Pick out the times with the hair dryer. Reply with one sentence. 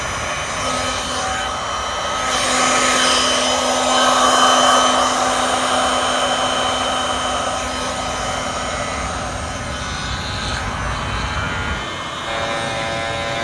You can hear the hair dryer from 0.0 to 13.3 s.